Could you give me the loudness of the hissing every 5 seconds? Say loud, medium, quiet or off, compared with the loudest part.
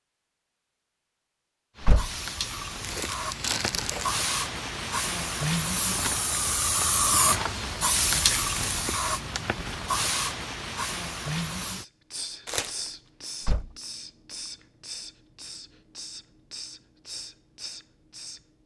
medium, loud, medium, quiet.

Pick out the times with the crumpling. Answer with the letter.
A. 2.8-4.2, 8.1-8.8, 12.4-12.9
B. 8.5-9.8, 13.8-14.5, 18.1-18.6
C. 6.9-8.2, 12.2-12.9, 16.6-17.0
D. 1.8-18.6
A.